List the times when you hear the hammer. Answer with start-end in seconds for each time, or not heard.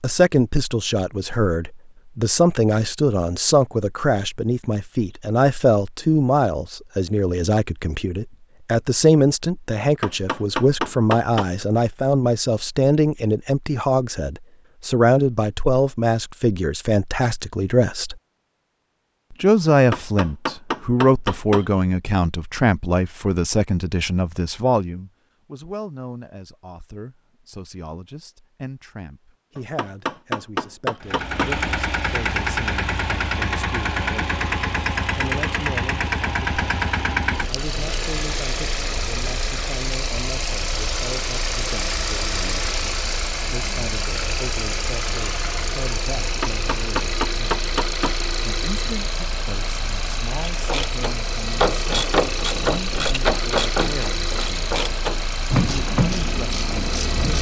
9.8-11.4, 19.7-21.6, 29.6-31.6, 46.2-48.2.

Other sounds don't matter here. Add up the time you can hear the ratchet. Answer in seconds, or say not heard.
7 s.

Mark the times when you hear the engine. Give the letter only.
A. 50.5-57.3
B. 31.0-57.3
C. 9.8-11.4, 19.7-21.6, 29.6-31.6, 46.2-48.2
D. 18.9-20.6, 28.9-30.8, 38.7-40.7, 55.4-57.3
B.